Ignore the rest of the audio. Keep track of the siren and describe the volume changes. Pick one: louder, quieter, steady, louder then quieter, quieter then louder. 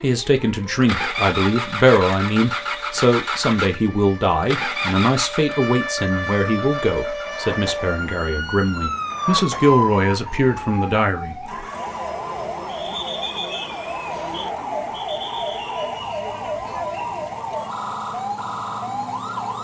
louder.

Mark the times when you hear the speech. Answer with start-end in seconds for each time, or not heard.
0.0-11.5.